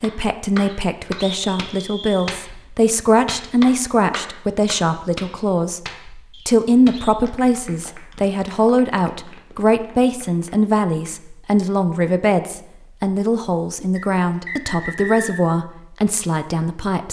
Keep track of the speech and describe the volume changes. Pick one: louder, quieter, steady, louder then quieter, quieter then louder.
steady.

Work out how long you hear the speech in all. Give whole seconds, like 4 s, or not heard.
17 s.